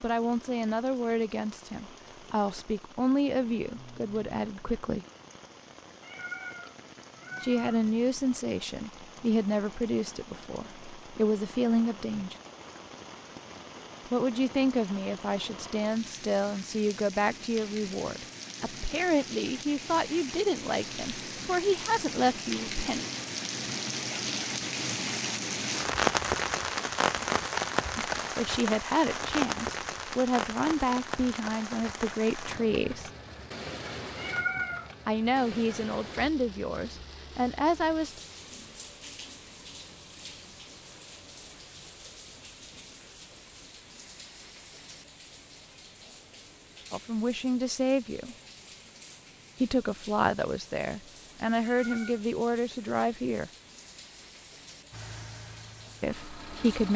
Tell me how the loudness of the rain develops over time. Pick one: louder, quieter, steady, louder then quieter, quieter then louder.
louder then quieter.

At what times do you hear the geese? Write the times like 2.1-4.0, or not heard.
not heard.